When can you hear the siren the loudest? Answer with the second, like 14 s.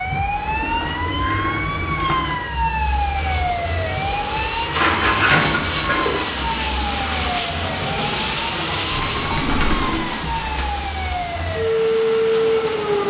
12 s.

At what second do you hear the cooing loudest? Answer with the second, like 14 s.
5 s.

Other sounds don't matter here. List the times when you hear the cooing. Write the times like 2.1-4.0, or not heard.
0.5-2.4, 4.7-6.2, 8.9-10.7.